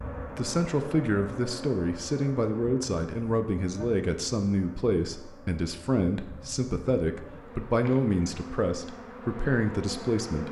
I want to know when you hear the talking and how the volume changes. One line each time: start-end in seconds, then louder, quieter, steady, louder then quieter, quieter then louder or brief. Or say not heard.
0.3-10.4 steady.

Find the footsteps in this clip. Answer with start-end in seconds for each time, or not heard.
not heard.